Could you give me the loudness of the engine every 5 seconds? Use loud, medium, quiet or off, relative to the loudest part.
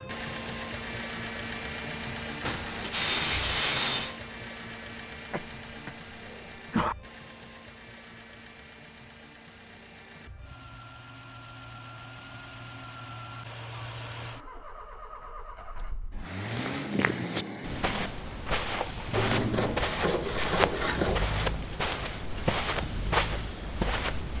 loud, medium, medium, loud, loud.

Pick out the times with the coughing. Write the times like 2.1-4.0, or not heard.
5.3-7.0.